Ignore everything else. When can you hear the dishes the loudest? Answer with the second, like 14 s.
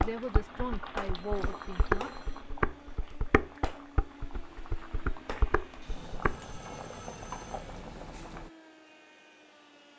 2 s.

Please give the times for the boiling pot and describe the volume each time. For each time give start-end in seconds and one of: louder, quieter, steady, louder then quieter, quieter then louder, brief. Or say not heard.
0.0-8.5 quieter then louder.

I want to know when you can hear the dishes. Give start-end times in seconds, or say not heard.
0.0-6.5.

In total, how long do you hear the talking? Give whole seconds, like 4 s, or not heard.
2 s.